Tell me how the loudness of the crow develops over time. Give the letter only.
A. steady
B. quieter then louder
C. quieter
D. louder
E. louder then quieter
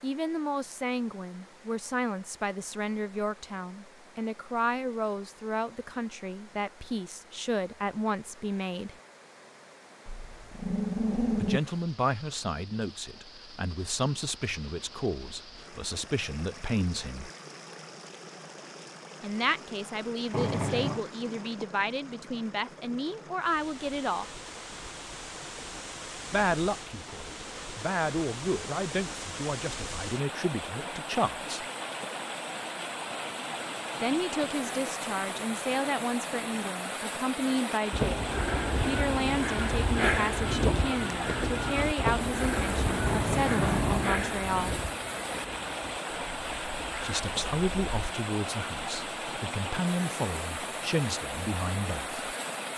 C.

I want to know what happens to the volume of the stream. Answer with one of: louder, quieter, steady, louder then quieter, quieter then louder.
louder.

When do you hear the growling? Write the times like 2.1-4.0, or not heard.
10.1-11.6, 20.3-21.1, 43.0-44.1.